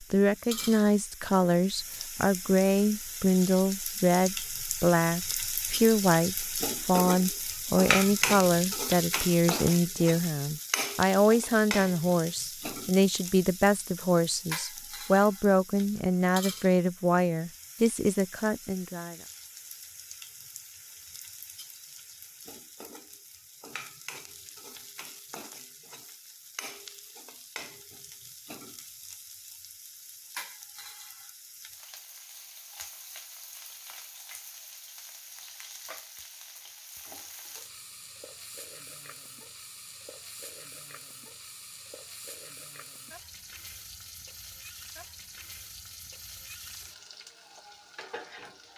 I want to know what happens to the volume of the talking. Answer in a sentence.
The loudness of the talking stays about the same.